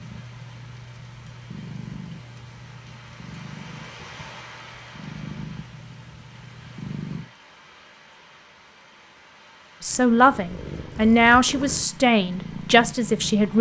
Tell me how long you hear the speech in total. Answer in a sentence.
You can hear the speech for 4 seconds altogether.